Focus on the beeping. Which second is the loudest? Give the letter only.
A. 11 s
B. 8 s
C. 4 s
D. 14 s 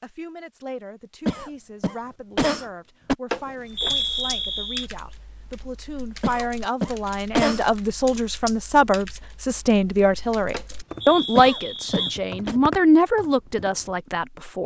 C.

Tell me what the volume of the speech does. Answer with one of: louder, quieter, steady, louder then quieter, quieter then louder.
louder.